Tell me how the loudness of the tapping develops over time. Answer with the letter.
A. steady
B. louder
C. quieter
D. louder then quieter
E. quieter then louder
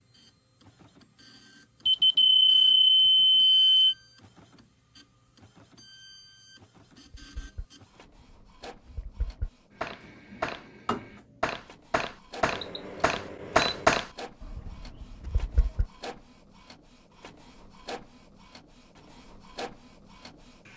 B.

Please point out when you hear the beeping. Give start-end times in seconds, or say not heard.
1.9-4.0, 12.4-13.8.